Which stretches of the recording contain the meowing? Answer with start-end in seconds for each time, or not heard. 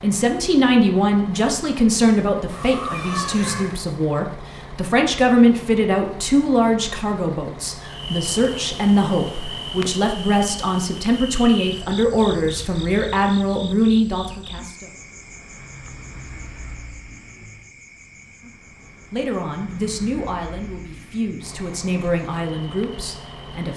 2.5-3.8.